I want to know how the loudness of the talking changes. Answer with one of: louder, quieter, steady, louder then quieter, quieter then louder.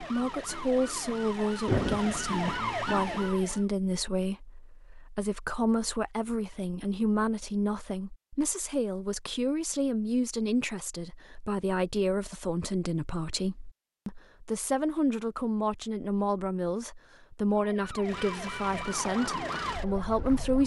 steady.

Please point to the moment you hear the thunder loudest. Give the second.
2 s.